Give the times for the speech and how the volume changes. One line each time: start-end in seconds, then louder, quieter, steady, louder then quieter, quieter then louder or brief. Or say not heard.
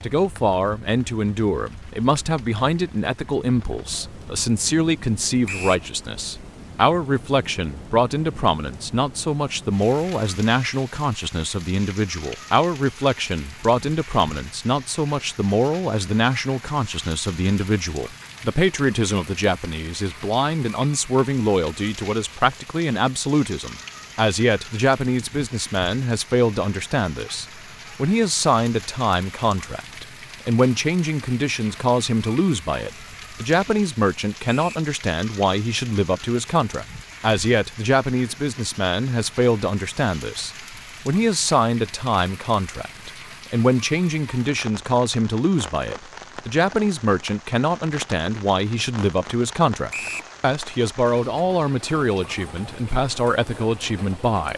0.0-54.5 steady.